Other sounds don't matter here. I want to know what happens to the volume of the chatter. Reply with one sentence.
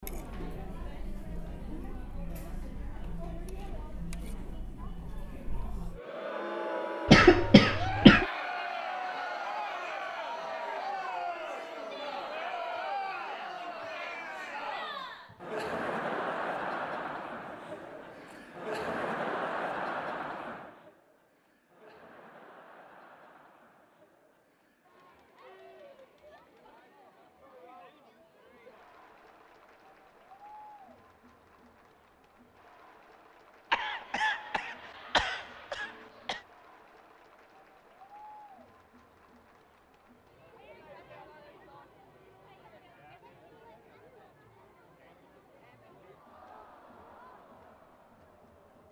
The volume of the chatter goes down.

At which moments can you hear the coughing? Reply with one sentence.
You can hear the coughing from 7.0 to 8.2 s and from 33.7 to 36.4 s.